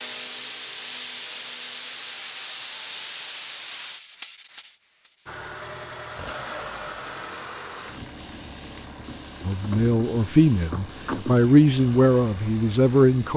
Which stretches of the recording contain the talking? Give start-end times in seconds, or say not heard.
9.4-13.3.